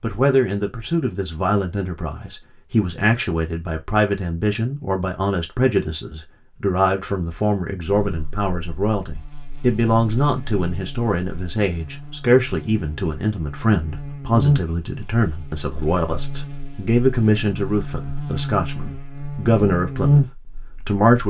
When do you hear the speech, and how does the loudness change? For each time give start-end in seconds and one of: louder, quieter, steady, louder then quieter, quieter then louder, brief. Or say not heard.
0.0-21.2 steady.